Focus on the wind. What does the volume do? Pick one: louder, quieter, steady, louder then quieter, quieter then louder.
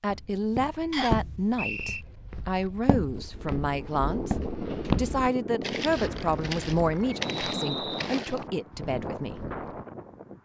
steady.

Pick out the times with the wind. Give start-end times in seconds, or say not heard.
3.1-10.3.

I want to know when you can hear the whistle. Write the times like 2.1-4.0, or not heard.
0.9-2.0, 7.2-8.1.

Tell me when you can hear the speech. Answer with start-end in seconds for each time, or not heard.
0.0-4.3, 5.0-9.4.